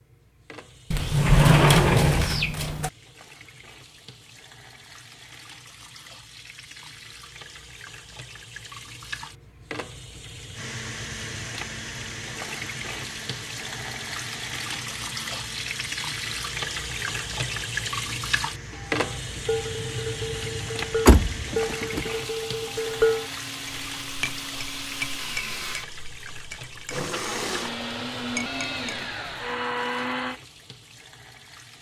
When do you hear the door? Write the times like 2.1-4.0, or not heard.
0.9-2.9, 21.1-22.1.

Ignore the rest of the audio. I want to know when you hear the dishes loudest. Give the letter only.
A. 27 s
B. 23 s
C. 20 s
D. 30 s
B.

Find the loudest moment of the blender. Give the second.
30 s.